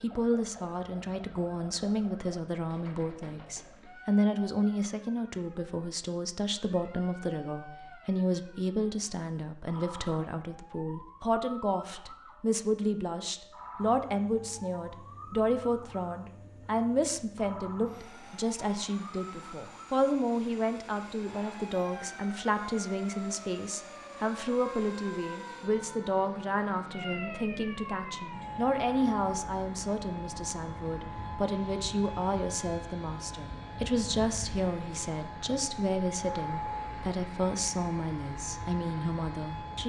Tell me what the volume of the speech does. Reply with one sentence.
The loudness of the speech stays about the same.